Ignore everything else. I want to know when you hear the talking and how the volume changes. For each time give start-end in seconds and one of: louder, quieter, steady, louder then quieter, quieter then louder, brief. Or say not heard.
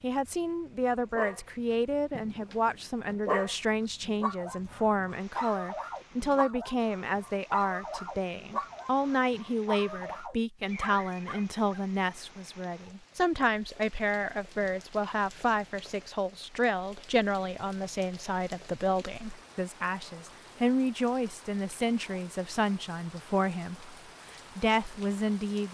0.0-23.9 steady
24.6-25.7 brief.